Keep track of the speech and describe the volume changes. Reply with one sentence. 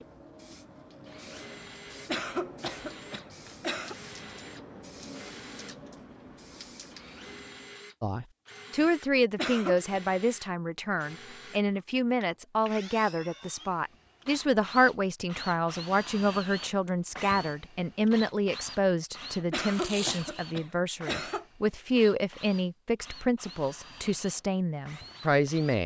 The volume of the speech stays about the same.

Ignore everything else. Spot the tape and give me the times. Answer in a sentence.
The tape can be heard from 19.7 to 20.4 s.